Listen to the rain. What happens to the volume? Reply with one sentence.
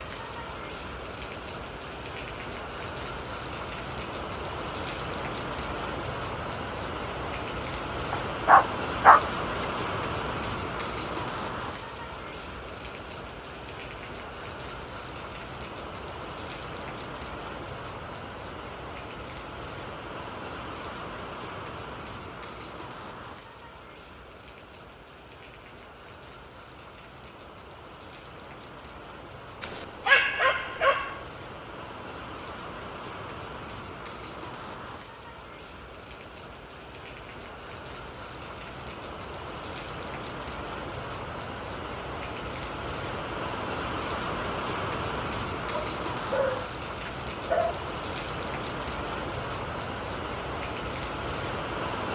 The volume of the rain goes down, then up.